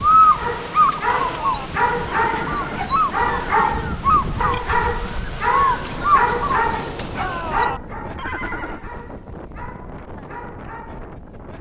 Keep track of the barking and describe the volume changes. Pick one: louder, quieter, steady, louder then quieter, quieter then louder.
quieter.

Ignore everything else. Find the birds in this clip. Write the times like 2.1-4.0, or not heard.
0.0-7.7.